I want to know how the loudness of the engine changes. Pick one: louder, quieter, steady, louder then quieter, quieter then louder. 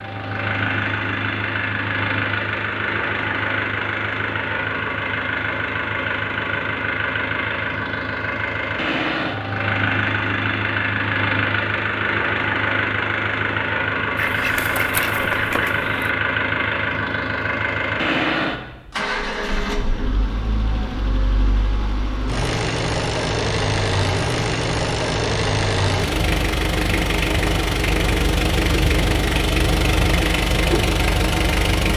steady.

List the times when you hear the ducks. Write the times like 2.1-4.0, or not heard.
14.2-16.1.